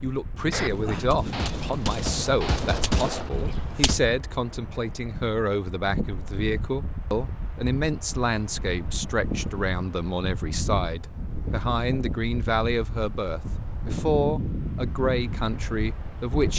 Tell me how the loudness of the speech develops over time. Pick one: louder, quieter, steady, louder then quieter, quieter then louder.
steady.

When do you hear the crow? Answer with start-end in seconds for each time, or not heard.
not heard.